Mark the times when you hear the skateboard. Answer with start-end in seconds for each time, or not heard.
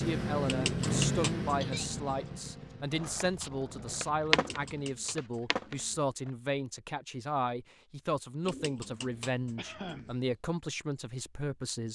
2.9-6.3.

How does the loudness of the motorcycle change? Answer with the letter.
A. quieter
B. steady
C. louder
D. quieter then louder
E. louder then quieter
A.